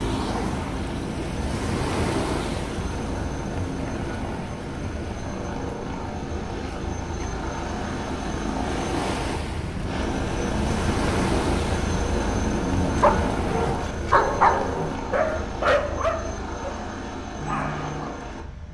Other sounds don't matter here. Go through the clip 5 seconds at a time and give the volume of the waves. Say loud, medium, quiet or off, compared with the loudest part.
loud, medium, loud, off.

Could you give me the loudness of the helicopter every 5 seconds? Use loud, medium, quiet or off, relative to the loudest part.
medium, loud, loud, medium.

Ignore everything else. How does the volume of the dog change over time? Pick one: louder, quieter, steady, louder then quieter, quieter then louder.
louder then quieter.